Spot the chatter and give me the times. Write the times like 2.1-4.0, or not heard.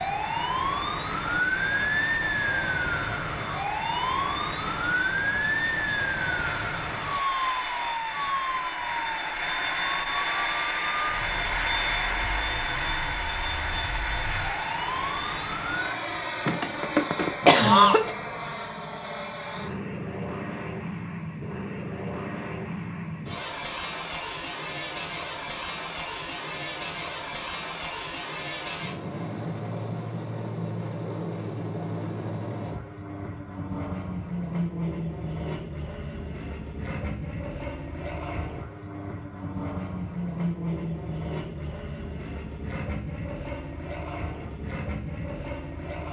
not heard.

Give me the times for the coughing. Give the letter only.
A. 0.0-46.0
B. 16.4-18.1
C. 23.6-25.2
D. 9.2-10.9
B.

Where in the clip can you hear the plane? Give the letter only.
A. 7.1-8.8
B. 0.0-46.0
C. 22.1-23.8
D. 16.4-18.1
B.